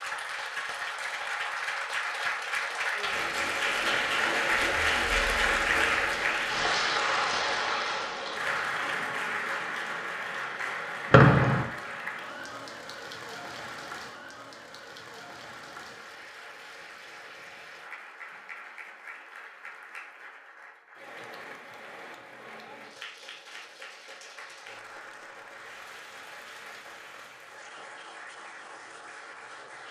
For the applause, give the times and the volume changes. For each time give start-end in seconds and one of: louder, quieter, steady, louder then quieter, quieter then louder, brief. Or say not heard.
0.0-29.8 quieter.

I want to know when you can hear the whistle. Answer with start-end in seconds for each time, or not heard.
11.1-11.7.